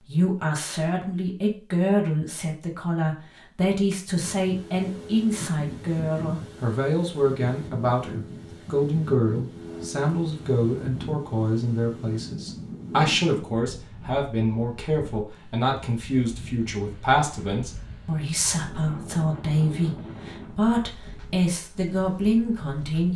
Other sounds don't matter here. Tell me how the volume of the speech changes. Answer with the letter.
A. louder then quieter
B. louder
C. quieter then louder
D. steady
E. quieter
D.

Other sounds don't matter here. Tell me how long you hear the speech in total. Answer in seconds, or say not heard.
23 s.